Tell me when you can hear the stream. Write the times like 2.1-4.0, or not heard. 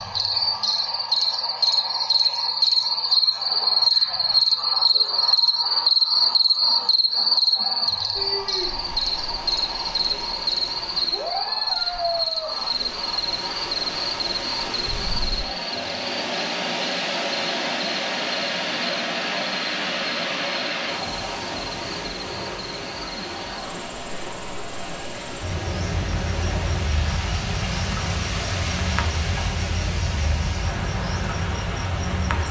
8.2-32.4.